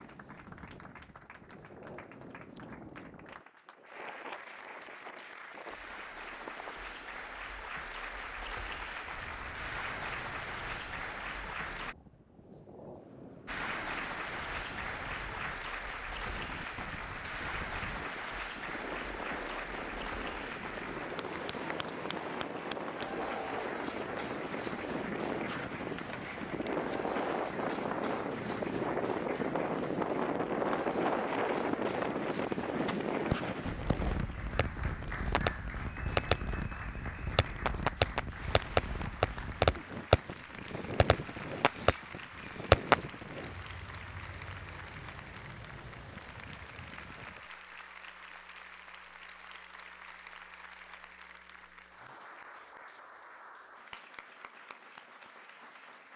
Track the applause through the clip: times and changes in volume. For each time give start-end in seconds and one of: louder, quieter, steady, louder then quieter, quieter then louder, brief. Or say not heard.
0.0-11.9 louder
13.4-56.1 quieter.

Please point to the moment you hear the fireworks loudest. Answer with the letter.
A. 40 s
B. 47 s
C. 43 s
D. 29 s
C.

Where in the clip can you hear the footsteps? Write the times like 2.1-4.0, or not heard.
not heard.